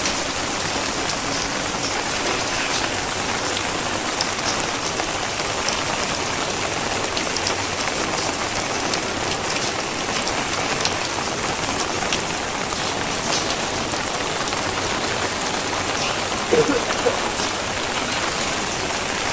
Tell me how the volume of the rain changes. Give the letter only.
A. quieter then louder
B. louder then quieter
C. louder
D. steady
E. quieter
D.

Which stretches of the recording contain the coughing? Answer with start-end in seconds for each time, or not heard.
16.5-17.2.